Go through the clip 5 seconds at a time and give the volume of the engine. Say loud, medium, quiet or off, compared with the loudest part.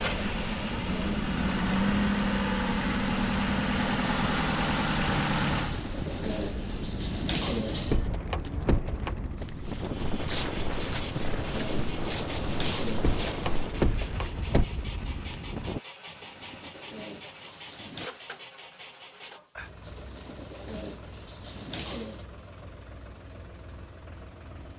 loud, medium, quiet, quiet, quiet.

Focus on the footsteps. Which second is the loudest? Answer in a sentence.
The volume of the footsteps peaks at 10 seconds.